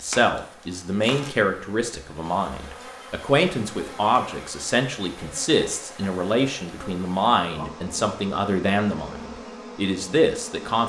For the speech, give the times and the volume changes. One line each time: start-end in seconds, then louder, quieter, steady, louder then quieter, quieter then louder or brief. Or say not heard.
0.0-10.8 steady.